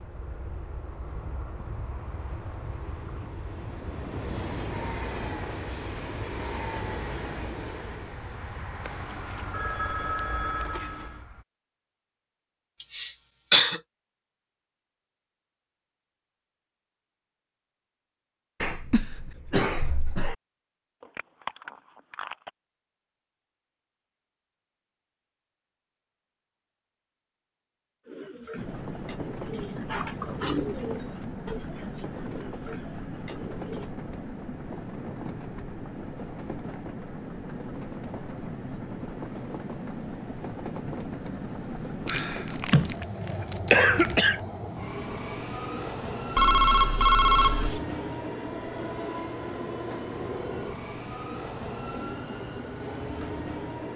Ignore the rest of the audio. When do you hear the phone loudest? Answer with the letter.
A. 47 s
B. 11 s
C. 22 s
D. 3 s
A.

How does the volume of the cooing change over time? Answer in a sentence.
The loudness of the cooing goes up, then down.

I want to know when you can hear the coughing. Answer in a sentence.
You can hear the coughing from 12.8 to 13.8 s, from 18.6 to 20.4 s and from 42.0 to 44.4 s.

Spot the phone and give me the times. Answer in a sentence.
You can hear the phone from 8.8 to 11.2 s, from 21.0 to 22.5 s and from 46.4 to 47.8 s.